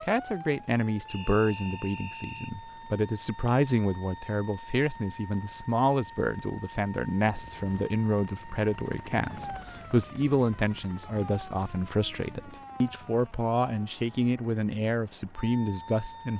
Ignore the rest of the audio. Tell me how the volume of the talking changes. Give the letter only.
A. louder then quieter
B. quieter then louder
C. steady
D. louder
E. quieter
C.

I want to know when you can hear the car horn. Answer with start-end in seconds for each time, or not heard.
not heard.